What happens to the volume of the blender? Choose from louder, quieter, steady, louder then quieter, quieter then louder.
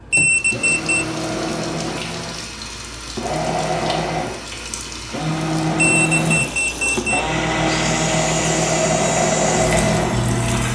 louder.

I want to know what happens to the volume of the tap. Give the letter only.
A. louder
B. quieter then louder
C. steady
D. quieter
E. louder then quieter
A.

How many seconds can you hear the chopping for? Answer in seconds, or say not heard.
not heard.